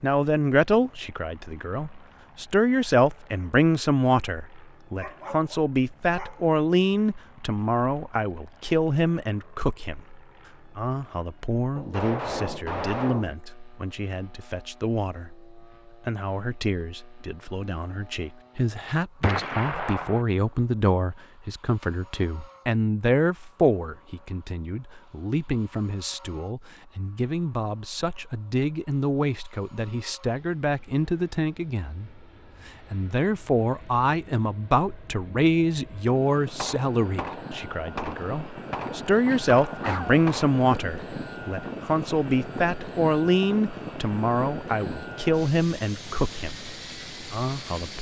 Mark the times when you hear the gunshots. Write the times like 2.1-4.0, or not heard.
11.8-13.3, 19.2-20.2, 36.5-40.5.